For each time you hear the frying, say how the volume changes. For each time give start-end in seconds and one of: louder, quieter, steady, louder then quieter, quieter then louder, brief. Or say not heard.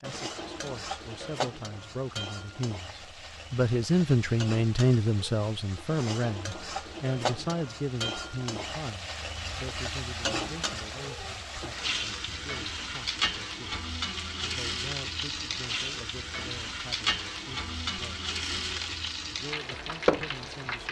0.0-20.8 louder.